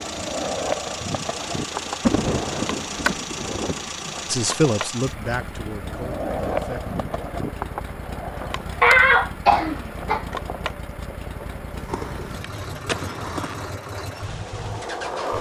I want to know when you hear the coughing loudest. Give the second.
9 s.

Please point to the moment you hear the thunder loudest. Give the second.
2 s.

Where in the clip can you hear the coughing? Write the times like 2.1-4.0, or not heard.
8.8-10.2.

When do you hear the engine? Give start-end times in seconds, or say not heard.
0.0-15.3.